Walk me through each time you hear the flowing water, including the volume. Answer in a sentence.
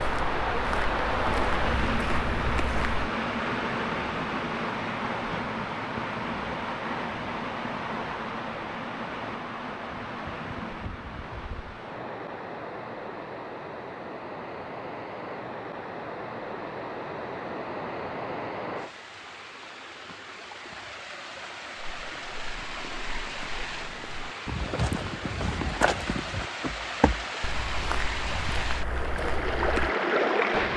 The flowing water can be heard from 0.0 to 30.7 s, getting quieter then louder.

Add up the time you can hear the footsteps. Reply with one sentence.
You can hear the footsteps for 11 seconds altogether.